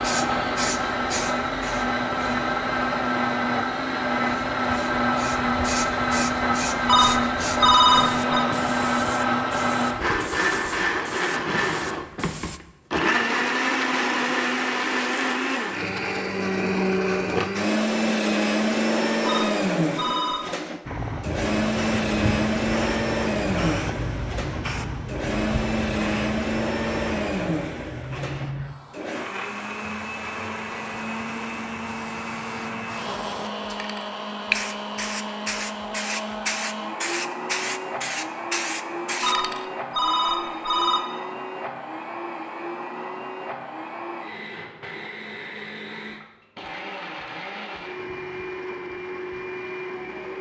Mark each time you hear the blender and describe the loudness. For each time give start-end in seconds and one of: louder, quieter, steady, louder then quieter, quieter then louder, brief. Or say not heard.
0.0-50.3 quieter.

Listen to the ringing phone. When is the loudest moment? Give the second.
8 s.